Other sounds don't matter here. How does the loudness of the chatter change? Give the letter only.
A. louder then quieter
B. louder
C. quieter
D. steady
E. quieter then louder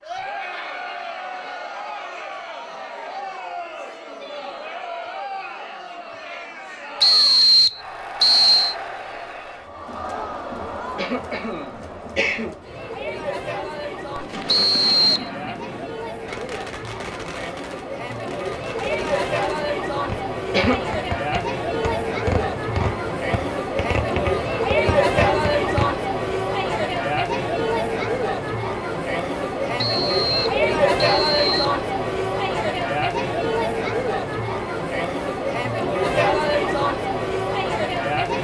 B.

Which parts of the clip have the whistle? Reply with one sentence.
The whistle can be heard from 7.0 to 8.8 s, from 14.4 to 15.3 s and from 29.8 to 31.8 s.